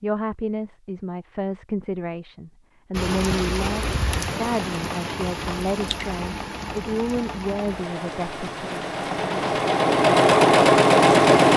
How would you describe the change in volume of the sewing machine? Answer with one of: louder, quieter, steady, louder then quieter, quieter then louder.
louder.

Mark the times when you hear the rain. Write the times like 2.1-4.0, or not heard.
2.9-11.5.